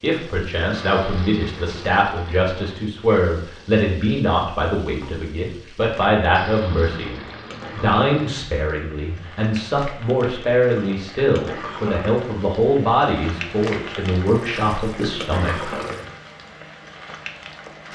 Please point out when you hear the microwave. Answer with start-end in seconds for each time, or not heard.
not heard.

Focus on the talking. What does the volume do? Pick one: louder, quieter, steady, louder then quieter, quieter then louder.
steady.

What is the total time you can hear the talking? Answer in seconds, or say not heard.
16 s.